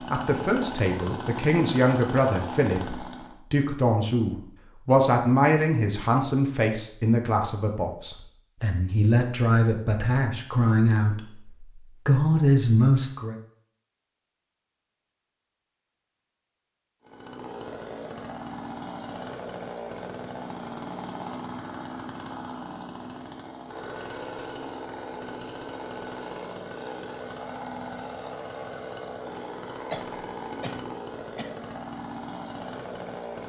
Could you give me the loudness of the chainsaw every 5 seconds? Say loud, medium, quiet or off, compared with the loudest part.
loud, off, off, loud, loud, loud, loud.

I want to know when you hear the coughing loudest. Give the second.
30 s.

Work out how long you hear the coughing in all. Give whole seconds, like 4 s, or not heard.
2 s.